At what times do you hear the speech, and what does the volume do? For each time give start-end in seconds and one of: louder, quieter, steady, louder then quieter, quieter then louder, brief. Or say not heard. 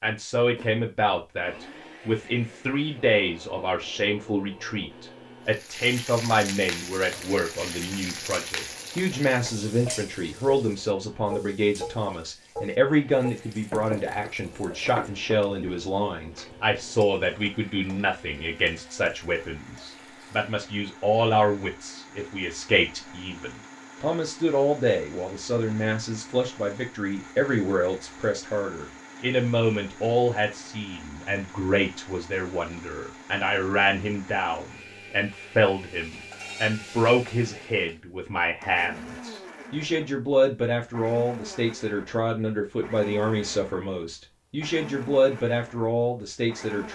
0.0-46.9 steady.